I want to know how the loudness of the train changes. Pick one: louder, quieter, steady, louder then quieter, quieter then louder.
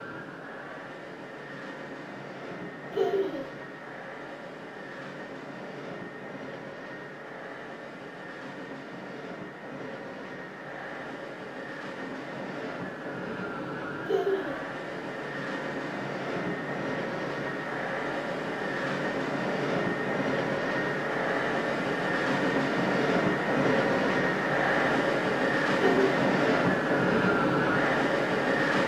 louder.